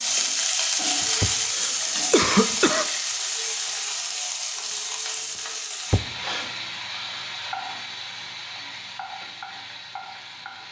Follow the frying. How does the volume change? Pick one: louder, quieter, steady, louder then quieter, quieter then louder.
quieter.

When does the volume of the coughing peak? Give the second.
2 s.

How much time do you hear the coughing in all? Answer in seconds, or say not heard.
2 s.